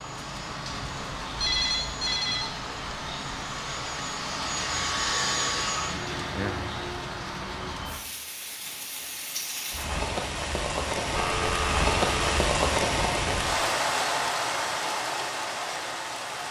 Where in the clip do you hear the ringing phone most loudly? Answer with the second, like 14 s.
2 s.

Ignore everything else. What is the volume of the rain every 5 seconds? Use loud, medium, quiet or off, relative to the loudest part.
medium, medium, loud, medium.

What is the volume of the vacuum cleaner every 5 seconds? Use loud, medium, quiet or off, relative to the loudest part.
medium, loud, off, off.